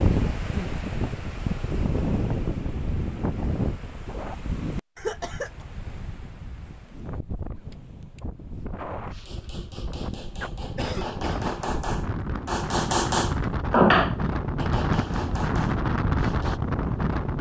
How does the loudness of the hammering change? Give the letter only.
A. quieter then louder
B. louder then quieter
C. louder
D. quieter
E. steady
B.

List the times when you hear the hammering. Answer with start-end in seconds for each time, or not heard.
9.1-16.6.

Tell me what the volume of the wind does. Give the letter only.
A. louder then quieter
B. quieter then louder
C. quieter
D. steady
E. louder
B.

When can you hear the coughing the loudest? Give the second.
5 s.